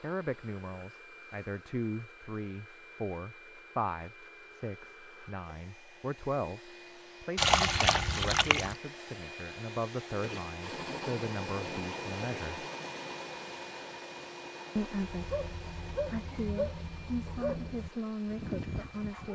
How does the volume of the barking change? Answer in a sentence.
The loudness of the barking stays about the same.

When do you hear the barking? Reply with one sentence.
The barking can be heard from 15.1 to 19.3 s.